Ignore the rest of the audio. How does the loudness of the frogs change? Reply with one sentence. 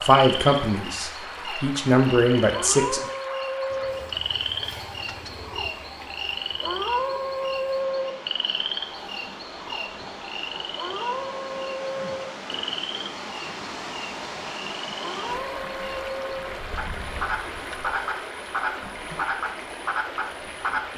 The volume of the frogs stays about the same.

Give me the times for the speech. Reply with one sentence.
The speech can be heard from 0.0 to 3.0 s.